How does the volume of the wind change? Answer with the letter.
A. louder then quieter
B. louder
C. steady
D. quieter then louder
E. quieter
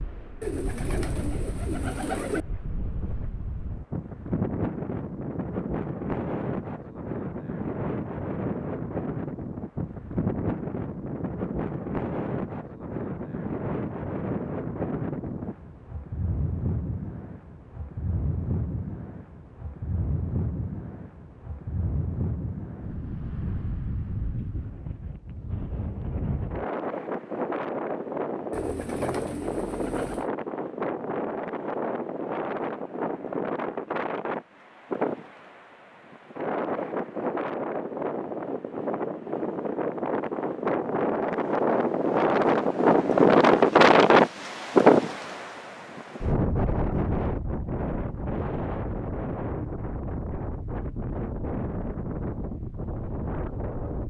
B.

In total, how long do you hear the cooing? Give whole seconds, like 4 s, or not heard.
4 s.